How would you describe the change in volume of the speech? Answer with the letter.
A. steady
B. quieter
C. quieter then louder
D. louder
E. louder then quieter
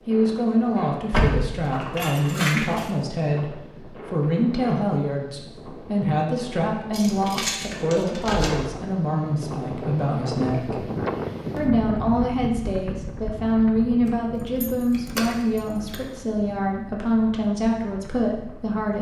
A.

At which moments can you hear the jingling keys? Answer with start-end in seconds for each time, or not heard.
1.1-2.9, 6.9-8.6, 14.1-16.0.